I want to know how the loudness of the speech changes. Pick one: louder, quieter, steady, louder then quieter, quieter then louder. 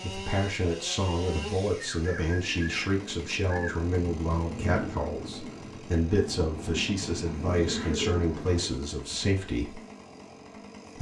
steady.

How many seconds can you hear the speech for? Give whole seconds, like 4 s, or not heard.
10 s.